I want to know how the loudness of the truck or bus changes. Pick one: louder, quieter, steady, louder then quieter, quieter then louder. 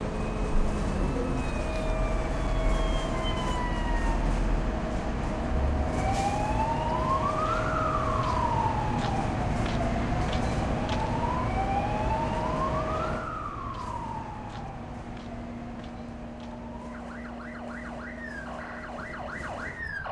quieter.